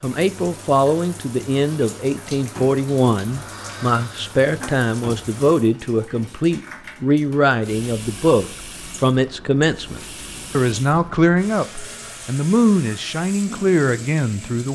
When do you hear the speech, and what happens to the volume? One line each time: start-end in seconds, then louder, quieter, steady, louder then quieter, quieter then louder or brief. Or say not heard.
0.0-14.7 steady.